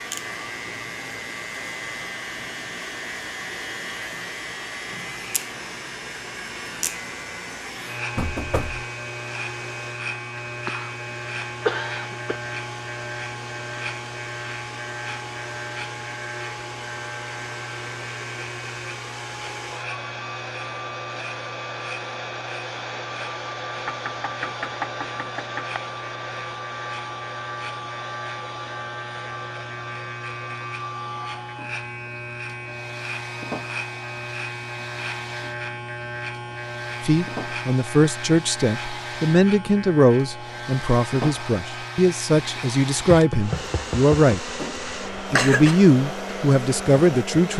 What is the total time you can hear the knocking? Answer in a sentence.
You can hear the knocking for 4 seconds altogether.